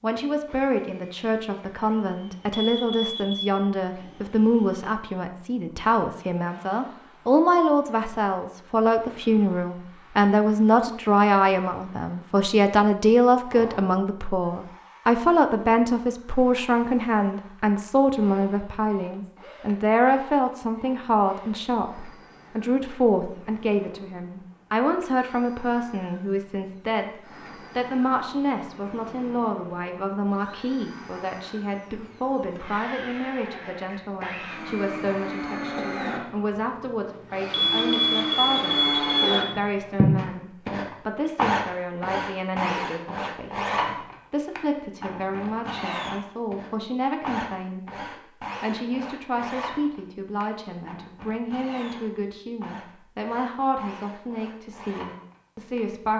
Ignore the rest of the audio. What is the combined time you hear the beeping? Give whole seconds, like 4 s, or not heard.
3 s.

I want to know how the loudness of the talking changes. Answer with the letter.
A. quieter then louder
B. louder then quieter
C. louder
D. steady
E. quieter
E.